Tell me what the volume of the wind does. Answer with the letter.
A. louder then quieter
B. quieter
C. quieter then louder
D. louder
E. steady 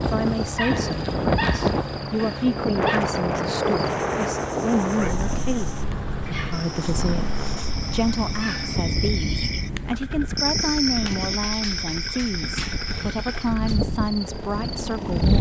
B.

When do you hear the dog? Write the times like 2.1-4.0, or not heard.
0.6-3.0, 6.2-8.8, 11.1-13.8.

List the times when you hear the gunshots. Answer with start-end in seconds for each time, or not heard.
not heard.